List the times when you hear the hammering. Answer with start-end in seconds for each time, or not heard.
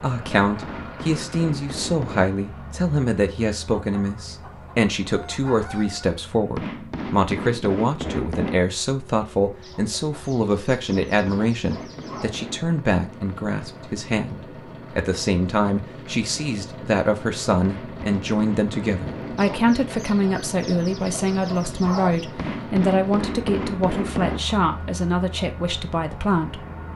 0.2-2.2, 6.5-8.6, 10.9-12.7, 17.6-19.6, 22.4-24.4.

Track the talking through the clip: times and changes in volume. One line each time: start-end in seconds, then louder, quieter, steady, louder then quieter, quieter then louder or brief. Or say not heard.
0.0-26.6 steady.